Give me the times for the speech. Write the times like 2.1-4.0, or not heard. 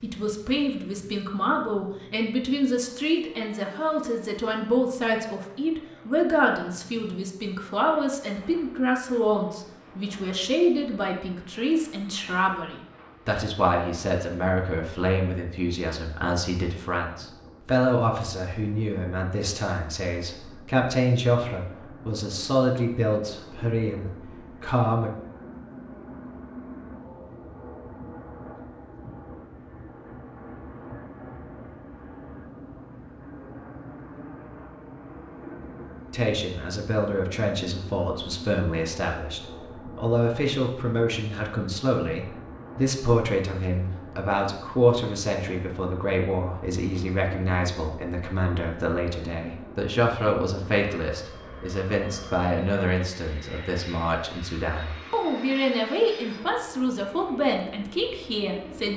0.0-25.1, 36.1-58.9.